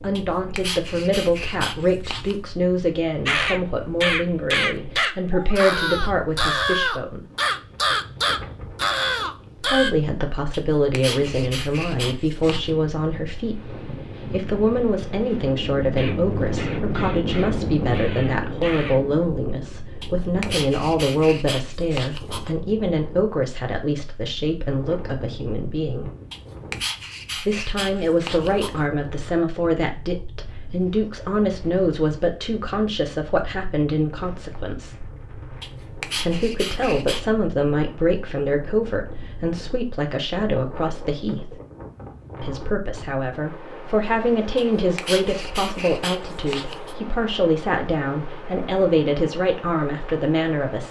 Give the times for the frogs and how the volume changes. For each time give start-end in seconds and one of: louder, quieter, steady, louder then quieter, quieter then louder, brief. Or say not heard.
not heard.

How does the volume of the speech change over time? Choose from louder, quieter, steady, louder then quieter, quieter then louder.
steady.